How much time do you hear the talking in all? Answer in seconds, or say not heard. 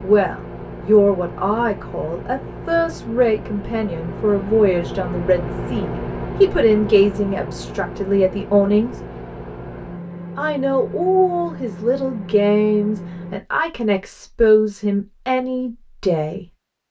15 s.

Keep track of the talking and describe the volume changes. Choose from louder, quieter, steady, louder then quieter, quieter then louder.
steady.